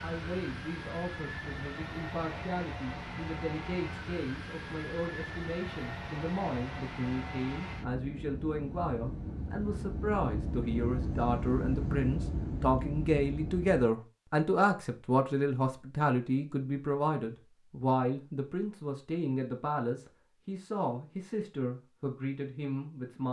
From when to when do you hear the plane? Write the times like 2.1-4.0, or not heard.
0.0-13.9.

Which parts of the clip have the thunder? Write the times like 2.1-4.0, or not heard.
not heard.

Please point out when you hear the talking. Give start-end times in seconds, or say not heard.
0.0-23.2.